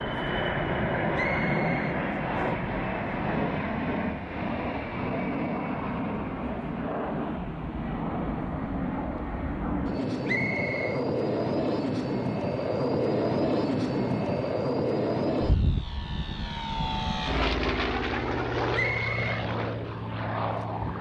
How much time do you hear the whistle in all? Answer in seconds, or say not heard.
3 s.